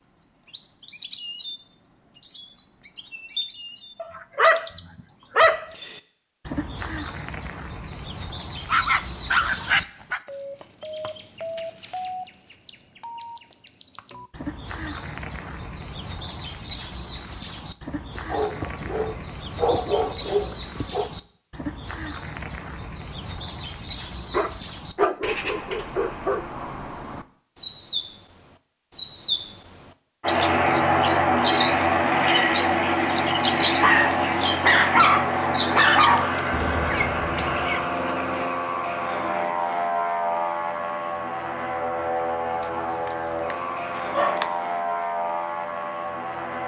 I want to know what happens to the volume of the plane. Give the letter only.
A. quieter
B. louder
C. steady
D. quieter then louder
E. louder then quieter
A.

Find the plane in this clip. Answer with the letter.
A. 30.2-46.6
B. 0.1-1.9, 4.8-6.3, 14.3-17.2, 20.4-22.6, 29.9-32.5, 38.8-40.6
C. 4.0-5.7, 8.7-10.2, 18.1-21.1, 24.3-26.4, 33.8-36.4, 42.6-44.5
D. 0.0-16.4
A.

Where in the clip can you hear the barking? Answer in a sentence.
You can hear the barking from 4.0 to 5.7 s, from 8.7 to 10.2 s, from 18.1 to 21.1 s, from 24.3 to 26.4 s, from 33.8 to 36.4 s and from 42.6 to 44.5 s.